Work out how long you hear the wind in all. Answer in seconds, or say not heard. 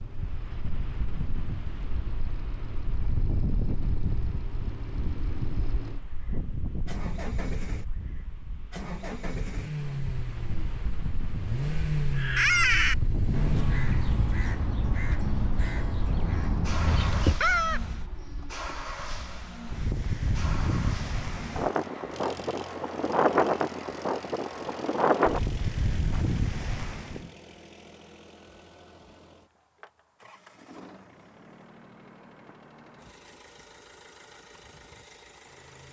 27 s.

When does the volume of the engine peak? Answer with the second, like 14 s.
12 s.